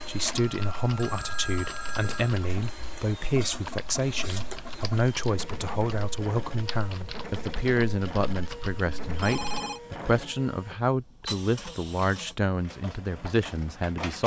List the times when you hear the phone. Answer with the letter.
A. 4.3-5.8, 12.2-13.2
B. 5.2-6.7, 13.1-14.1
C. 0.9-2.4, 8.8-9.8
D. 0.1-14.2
C.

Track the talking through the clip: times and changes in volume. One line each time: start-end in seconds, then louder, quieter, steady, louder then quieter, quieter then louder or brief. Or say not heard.
0.1-14.2 steady.